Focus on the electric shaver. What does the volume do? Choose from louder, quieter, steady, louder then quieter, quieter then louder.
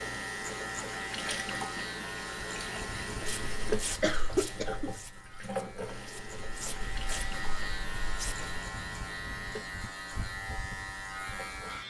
quieter then louder.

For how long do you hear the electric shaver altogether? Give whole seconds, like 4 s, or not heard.
12 s.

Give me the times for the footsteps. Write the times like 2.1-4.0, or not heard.
3.2-8.6.